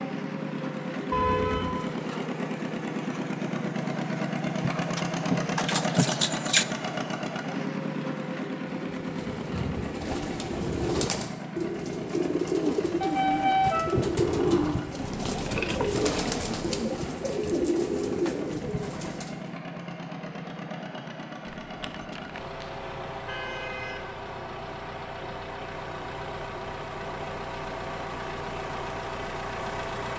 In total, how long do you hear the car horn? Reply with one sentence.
The car horn can be heard for 4 seconds in total.